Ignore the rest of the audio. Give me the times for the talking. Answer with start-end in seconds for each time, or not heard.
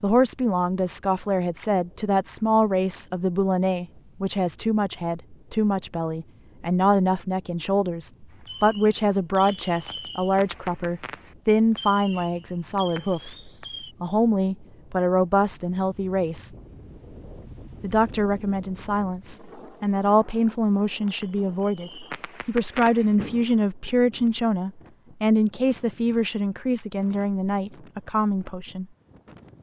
0.0-13.4, 14.0-16.5, 17.8-28.9.